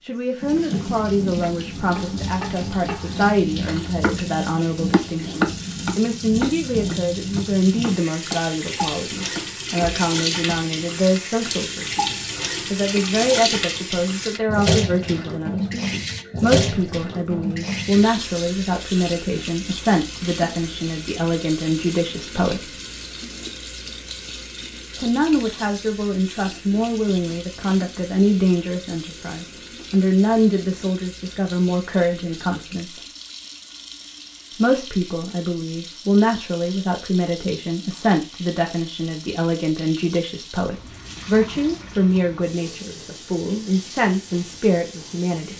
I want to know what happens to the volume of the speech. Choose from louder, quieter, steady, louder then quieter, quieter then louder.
steady.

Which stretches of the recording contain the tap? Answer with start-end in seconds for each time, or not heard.
0.0-45.5.